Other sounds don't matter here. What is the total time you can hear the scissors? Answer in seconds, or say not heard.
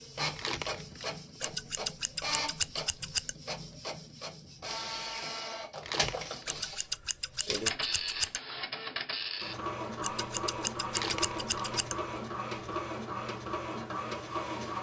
6 s.